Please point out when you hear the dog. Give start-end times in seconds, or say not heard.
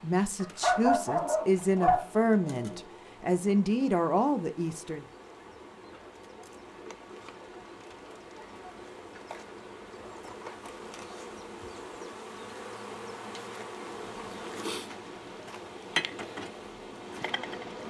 0.4-2.8.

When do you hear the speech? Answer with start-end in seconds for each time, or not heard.
0.0-5.0.